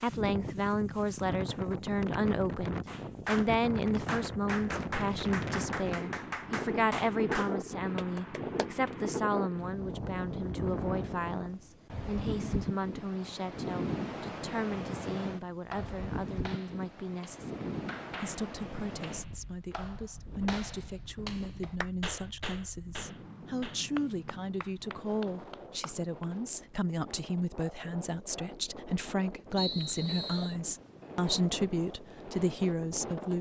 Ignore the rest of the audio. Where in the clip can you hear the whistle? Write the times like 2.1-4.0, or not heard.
29.6-30.6.